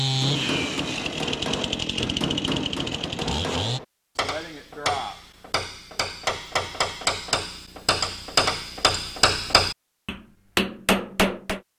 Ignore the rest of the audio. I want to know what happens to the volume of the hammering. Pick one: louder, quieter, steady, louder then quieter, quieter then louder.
louder.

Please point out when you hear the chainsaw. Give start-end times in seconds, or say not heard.
0.0-3.8.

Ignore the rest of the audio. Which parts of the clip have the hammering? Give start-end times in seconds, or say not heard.
0.1-11.6.